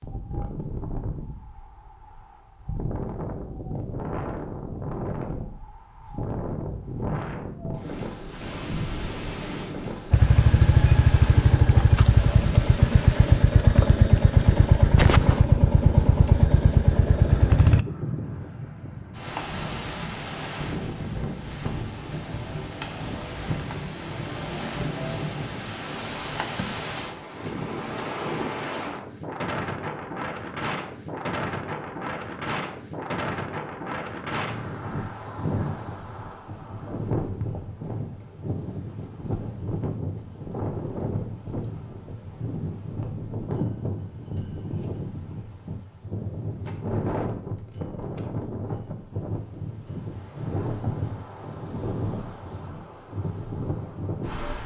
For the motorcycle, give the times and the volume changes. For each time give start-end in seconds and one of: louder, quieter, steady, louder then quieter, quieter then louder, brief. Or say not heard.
10.1-17.9 steady.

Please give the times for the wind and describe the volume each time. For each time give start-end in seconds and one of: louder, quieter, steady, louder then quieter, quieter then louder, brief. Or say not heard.
0.0-54.6 steady.